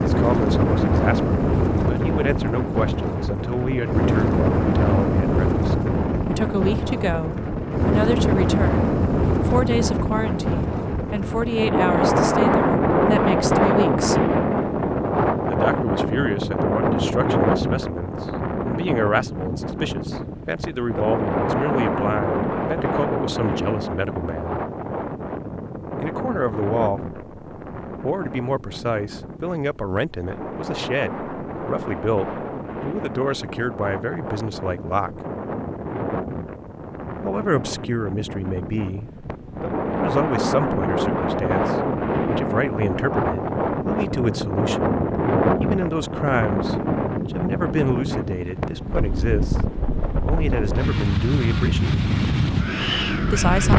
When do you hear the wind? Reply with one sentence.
You can hear the wind from 0.0 to 53.7 s.